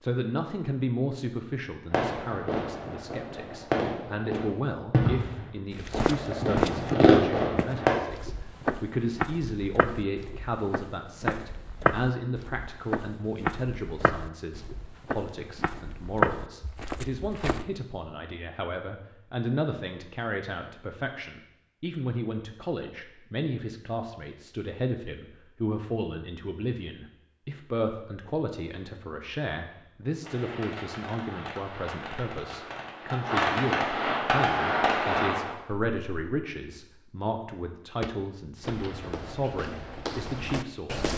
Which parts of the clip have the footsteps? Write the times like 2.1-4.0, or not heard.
5.7-17.6, 38.0-41.1.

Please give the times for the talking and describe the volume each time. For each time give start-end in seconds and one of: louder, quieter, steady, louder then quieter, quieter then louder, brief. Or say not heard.
0.0-41.0 steady.